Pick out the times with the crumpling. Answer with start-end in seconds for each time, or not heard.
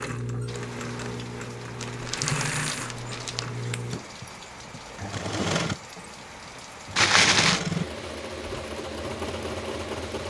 1.8-3.5, 7.0-7.6.